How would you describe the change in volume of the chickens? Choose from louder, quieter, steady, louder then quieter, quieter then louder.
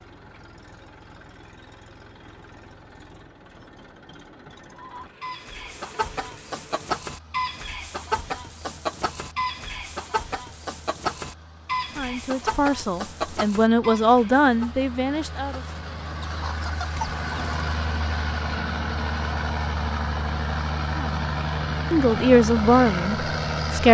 quieter.